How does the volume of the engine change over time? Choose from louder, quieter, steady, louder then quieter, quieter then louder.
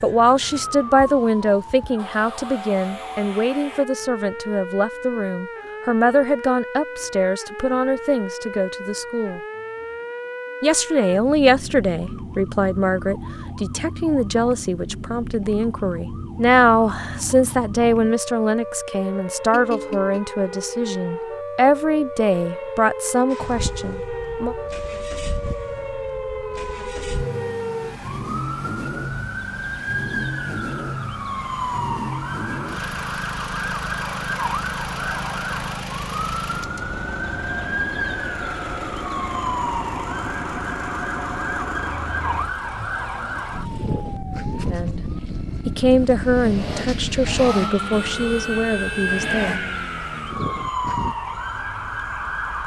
steady.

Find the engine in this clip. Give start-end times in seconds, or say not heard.
23.3-51.1.